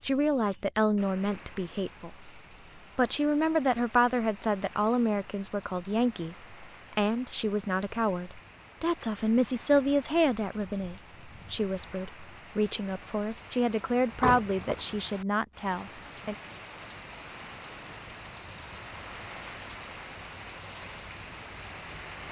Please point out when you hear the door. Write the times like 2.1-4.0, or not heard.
14.1-14.8.